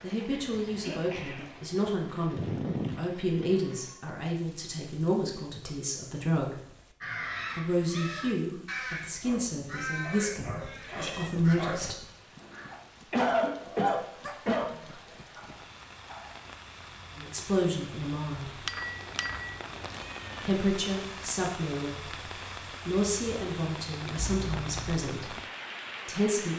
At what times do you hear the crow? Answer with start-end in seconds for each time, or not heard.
7.0-12.7.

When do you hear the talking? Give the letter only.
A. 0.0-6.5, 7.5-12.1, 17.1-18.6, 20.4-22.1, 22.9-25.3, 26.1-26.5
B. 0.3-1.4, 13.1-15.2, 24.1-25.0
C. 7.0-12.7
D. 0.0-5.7
A.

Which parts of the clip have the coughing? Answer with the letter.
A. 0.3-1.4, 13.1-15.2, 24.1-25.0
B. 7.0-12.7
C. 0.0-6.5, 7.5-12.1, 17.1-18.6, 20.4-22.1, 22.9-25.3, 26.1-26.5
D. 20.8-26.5
A.